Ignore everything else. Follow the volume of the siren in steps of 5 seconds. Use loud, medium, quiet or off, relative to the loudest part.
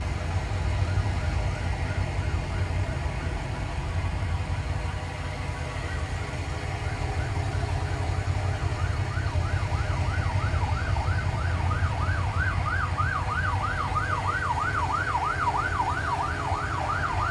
medium, medium, loud, loud.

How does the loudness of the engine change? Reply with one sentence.
The volume of the engine stays about the same.